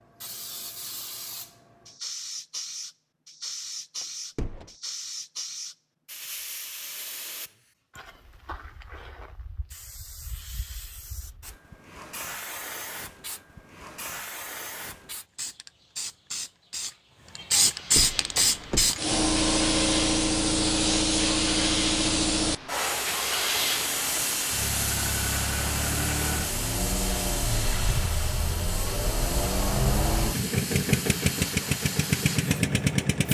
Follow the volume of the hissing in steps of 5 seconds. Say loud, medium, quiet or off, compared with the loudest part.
quiet, quiet, quiet, loud, loud, medium, medium.